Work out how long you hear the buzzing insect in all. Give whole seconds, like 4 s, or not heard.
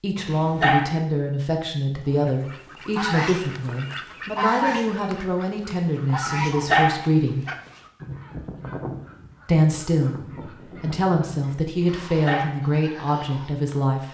not heard.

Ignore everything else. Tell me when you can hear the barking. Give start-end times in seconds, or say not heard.
0.1-0.8, 6.2-7.0, 11.8-12.5.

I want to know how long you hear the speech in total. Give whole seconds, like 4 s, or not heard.
12 s.